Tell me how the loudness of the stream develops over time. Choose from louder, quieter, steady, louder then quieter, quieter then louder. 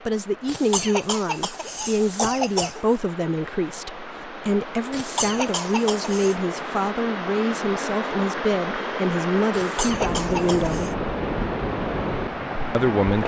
louder.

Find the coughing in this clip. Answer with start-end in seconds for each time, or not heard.
0.5-2.8, 4.9-6.3, 9.5-10.9.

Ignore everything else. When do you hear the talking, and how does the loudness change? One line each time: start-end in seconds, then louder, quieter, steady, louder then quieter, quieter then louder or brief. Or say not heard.
0.1-10.9 steady
12.7-13.2 brief.